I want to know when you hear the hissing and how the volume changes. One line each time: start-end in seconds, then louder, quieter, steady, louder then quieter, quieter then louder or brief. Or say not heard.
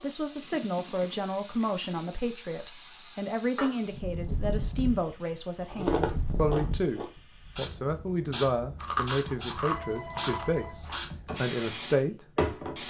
0.0-12.8 louder.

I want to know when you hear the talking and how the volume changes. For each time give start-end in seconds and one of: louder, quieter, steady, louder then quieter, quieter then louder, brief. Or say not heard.
0.0-12.2 steady.